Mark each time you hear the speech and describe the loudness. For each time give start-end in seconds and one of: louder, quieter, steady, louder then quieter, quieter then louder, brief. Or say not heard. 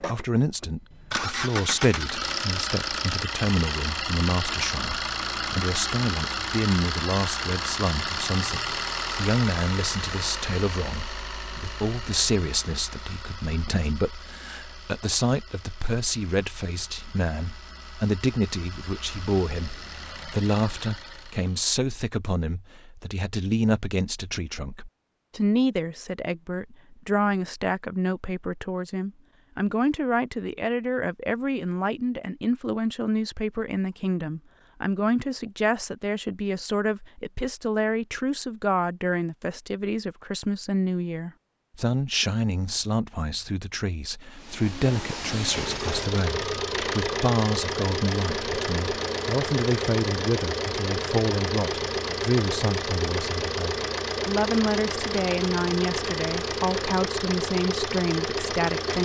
0.0-59.0 steady.